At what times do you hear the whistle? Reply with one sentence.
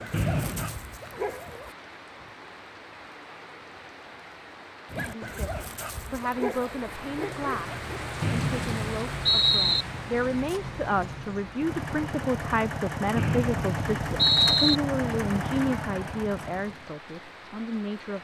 You can hear the whistle from 0.1 to 0.8 s, from 8.2 to 9.8 s and from 13.2 to 14.8 s.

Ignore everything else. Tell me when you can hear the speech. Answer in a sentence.
The speech can be heard from 5.0 to 18.1 s.